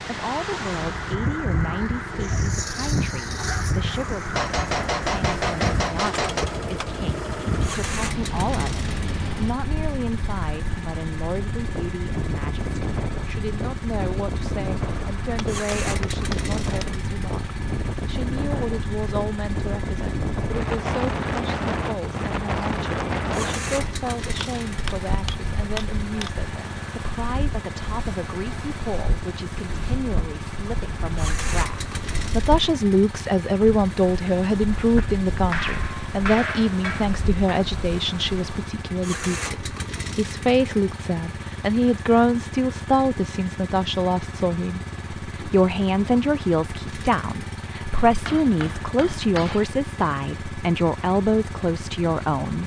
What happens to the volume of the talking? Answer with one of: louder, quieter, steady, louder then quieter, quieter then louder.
louder.